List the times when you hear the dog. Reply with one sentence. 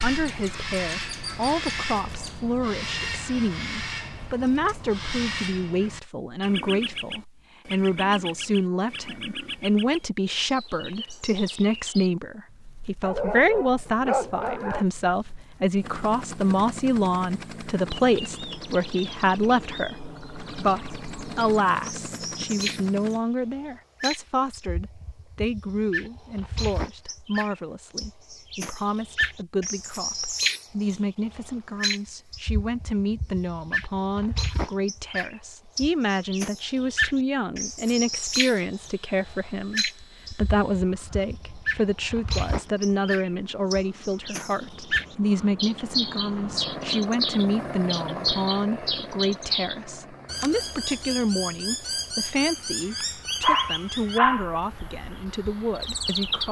You can hear the dog from 13.0 to 14.8 s and from 53.0 to 54.5 s.